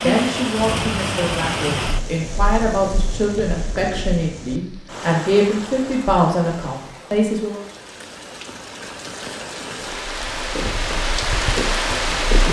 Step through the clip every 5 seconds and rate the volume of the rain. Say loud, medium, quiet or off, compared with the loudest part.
loud, medium, loud.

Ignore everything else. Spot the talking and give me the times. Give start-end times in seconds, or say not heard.
0.0-7.6.